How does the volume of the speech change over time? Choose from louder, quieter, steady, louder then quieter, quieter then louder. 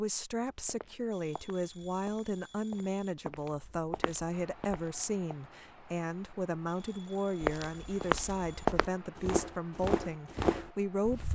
steady.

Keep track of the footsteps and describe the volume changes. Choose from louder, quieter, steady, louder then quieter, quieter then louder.
louder.